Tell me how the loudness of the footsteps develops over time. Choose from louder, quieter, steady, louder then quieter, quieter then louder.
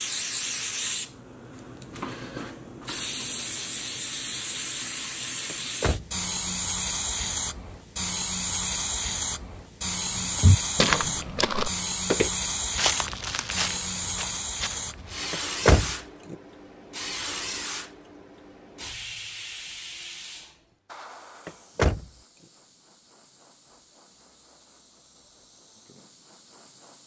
quieter.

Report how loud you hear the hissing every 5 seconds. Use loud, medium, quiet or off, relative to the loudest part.
loud, loud, loud, medium, quiet, quiet.